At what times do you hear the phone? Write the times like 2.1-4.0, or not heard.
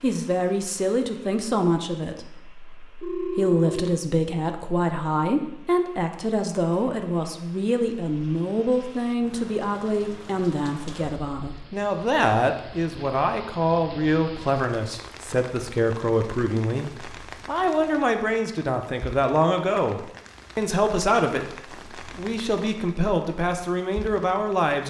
3.0-4.0.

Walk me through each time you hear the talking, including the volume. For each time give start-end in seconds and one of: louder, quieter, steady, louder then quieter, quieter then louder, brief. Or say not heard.
0.0-24.8 steady.